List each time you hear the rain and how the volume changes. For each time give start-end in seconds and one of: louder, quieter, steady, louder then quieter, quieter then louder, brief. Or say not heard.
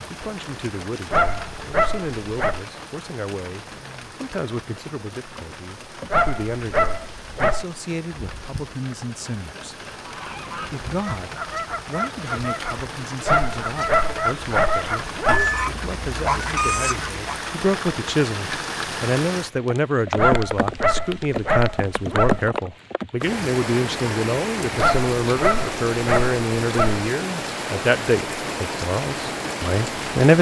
0.0-30.3 louder.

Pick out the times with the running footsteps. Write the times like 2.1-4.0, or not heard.
not heard.